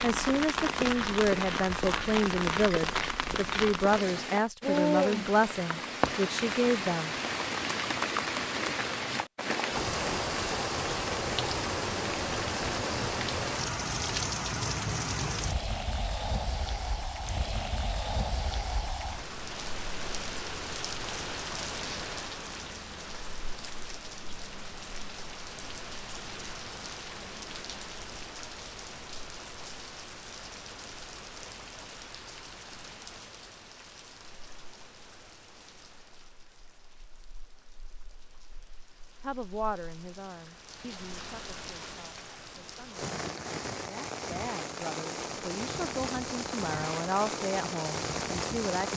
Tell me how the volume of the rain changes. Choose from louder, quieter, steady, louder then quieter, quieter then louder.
quieter then louder.